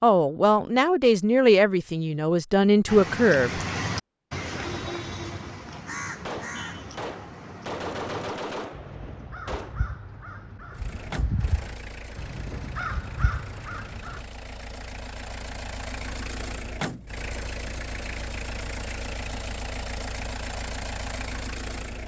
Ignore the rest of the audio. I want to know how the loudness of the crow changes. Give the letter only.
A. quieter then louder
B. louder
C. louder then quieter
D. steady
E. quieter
A.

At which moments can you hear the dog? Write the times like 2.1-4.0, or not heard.
not heard.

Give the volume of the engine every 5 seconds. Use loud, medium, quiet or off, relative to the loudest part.
off, off, medium, loud, loud.